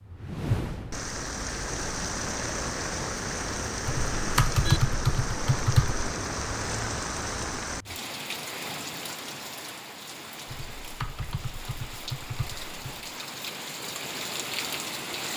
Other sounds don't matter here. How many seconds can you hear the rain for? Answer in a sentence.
The rain can be heard for 15 seconds in total.